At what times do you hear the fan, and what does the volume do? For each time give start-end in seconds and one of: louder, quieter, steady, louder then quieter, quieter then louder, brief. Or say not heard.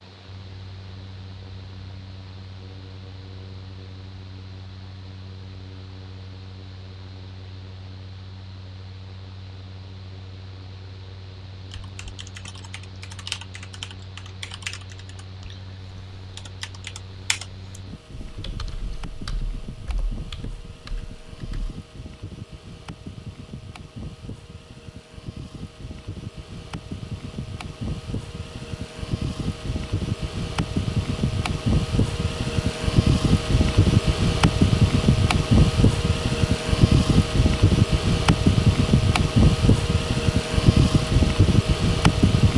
0.0-42.5 louder.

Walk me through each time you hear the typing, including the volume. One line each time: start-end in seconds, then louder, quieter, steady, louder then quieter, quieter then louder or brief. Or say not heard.
11.6-21.8 quieter.